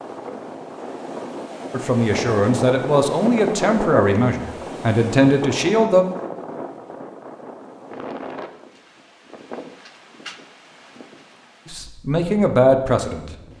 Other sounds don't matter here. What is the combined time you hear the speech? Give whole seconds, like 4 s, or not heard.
6 s.